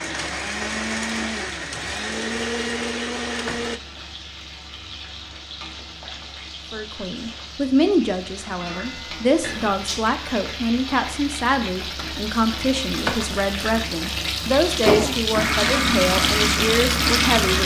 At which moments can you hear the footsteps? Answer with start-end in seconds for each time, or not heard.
not heard.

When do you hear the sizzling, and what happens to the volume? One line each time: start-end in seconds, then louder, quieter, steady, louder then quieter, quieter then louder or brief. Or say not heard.
0.0-17.6 louder.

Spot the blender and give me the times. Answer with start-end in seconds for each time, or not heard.
0.0-3.8, 14.9-17.6.